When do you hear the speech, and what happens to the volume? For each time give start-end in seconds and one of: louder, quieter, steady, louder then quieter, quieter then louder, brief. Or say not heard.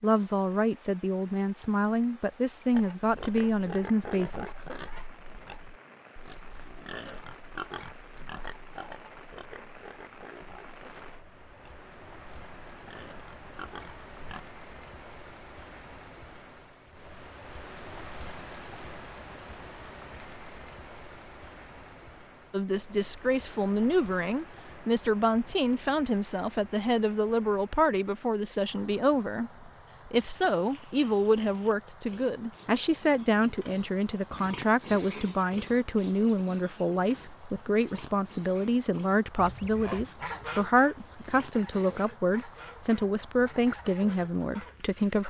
0.0-4.5 steady
22.5-45.2 steady.